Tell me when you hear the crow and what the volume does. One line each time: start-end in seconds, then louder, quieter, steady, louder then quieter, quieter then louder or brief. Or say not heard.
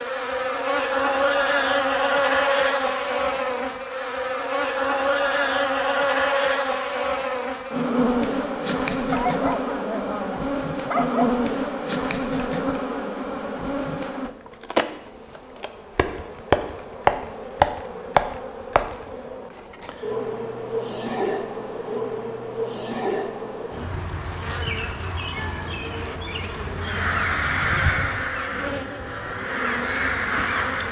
26.8-30.8 quieter then louder.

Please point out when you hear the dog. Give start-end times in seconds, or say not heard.
9.1-11.3.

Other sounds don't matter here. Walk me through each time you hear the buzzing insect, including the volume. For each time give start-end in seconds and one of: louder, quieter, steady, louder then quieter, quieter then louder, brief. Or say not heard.
0.0-30.8 quieter.